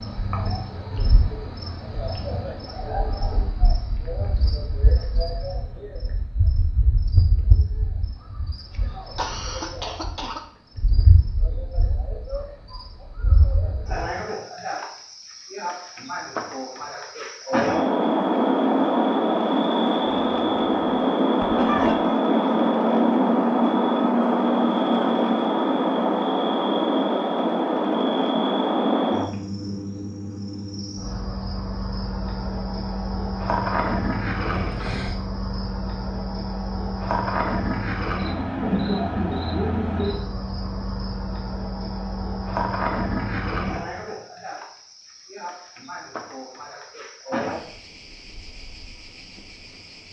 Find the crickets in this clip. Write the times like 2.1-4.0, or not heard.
0.0-50.0.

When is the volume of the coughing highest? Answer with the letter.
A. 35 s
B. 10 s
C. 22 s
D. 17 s
C.